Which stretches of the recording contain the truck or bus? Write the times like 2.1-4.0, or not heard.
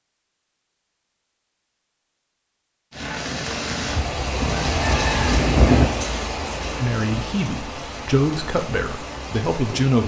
not heard.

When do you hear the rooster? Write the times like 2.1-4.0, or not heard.
4.4-5.8.